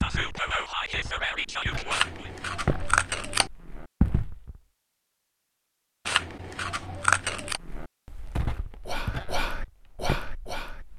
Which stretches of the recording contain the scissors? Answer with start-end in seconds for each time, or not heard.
1.9-3.5, 6.0-7.6.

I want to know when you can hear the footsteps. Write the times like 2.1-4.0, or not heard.
0.0-4.6, 7.4-10.9.